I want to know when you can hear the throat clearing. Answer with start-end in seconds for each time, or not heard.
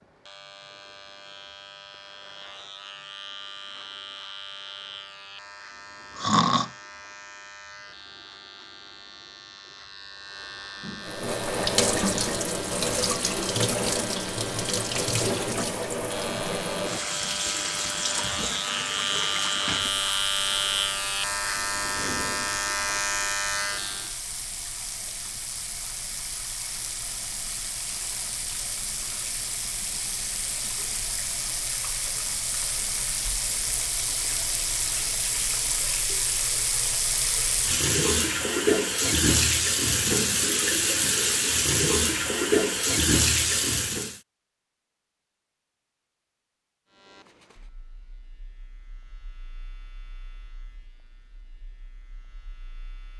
6.2-6.7.